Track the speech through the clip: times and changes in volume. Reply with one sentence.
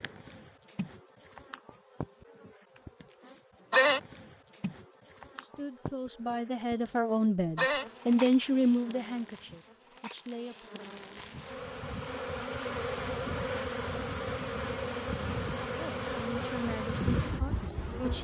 The speech can be heard from 5.4 to 10.7 s, getting louder then quieter; and briefly from 15.7 to 18.1 s.